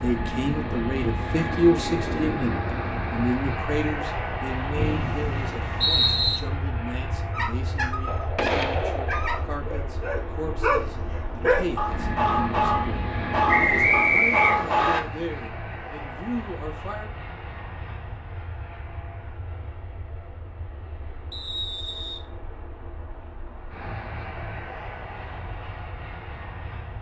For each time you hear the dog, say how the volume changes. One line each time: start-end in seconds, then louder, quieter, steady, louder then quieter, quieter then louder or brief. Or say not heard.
7.3-15.1 louder.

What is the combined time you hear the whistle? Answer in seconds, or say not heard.
4 s.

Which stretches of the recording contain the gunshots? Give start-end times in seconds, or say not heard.
8.1-9.4.